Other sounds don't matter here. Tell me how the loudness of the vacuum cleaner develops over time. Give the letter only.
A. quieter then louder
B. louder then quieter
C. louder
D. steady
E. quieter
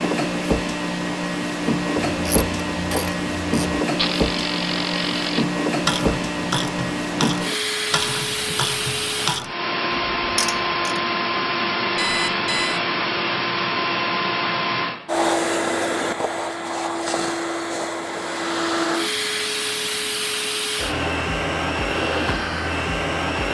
D.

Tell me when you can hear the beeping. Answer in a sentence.
The beeping can be heard from 11.9 to 12.8 s.